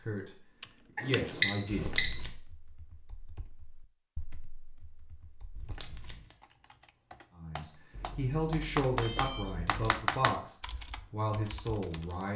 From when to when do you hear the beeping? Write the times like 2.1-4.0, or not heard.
0.9-2.2, 8.0-9.7.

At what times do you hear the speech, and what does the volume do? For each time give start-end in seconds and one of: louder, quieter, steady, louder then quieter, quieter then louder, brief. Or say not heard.
0.0-0.4 brief
1.0-2.0 brief
7.3-12.3 steady.